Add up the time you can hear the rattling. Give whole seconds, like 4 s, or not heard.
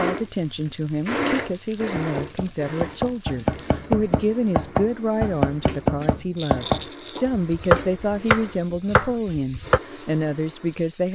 2 s.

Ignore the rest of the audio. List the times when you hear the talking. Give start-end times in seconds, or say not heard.
0.0-11.1.